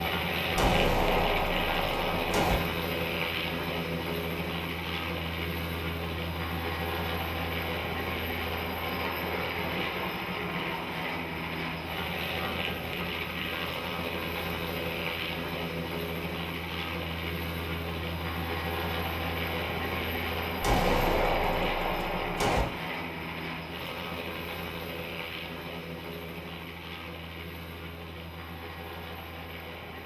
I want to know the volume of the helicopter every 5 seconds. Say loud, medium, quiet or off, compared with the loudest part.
loud, loud, loud, loud, loud, medium.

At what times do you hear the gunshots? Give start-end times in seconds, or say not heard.
0.6-2.5, 20.6-22.6.